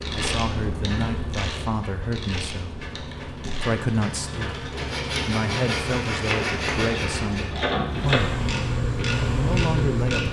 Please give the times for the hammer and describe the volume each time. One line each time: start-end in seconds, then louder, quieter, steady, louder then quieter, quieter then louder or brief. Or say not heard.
not heard.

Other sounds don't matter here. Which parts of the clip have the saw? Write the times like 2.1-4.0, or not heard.
4.8-7.5.